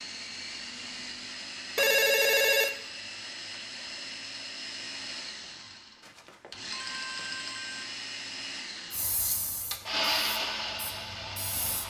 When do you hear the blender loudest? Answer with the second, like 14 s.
10 s.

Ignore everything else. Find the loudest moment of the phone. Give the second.
2 s.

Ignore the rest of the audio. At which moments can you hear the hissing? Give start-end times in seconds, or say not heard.
8.9-11.8.